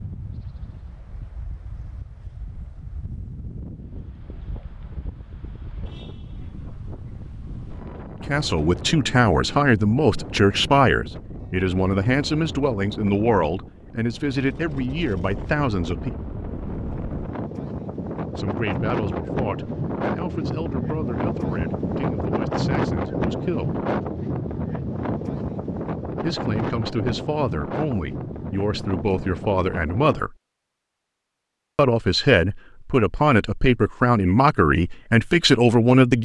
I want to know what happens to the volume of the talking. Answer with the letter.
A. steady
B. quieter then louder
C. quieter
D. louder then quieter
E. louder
B.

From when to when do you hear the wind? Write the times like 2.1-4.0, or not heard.
0.0-30.2.